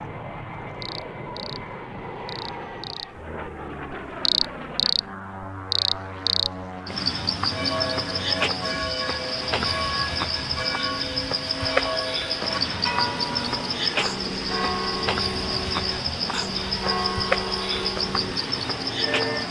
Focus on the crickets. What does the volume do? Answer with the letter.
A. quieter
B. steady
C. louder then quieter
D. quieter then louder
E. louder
B.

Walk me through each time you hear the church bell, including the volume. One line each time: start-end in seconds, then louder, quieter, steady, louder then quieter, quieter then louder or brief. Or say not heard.
7.5-19.4 steady.